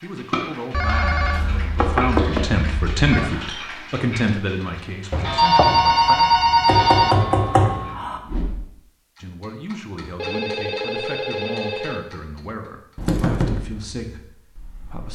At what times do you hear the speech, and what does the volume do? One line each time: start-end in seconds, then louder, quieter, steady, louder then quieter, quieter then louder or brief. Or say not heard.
0.0-6.2 louder then quieter
9.2-15.1 steady.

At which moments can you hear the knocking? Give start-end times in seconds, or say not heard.
1.3-2.5, 6.7-8.2, 12.9-13.6.